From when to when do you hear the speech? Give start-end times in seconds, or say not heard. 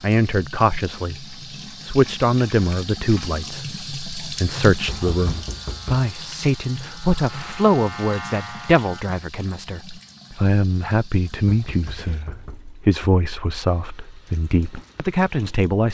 0.0-15.9.